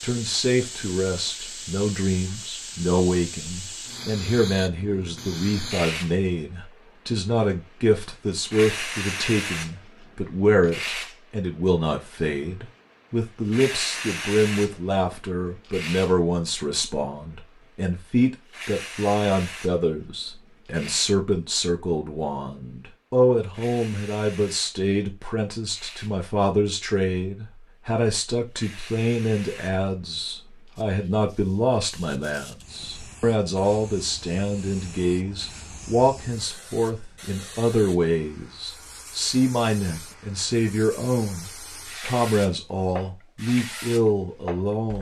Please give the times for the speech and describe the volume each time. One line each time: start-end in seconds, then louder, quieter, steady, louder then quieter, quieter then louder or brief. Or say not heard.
0.0-44.9 steady.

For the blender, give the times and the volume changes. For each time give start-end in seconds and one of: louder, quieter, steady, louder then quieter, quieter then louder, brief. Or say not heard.
not heard.